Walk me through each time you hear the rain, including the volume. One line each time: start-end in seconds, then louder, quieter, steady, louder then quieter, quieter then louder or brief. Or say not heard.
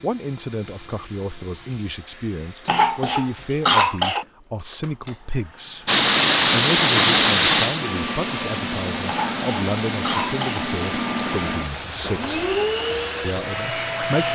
5.8-14.3 quieter.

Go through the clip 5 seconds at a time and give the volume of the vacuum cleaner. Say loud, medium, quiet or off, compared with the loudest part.
quiet, loud, loud.